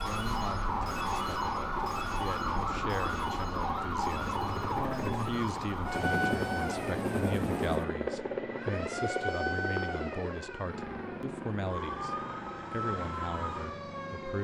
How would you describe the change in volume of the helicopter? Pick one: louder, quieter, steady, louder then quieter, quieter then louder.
louder then quieter.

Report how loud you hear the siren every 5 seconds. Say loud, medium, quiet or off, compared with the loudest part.
loud, loud, medium.